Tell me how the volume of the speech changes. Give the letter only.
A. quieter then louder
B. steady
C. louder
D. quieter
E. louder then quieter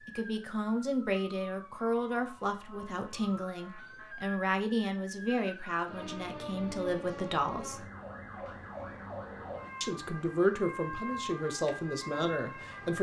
B.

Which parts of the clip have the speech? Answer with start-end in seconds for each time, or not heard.
0.1-7.8, 9.8-12.9.